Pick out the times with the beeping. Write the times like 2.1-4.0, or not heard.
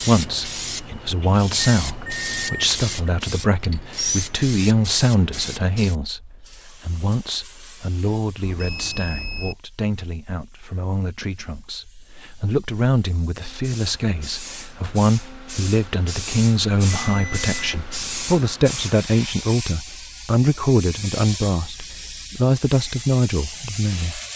1.6-3.1, 8.4-9.6, 17.0-18.3.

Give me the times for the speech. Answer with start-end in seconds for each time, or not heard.
0.1-24.2.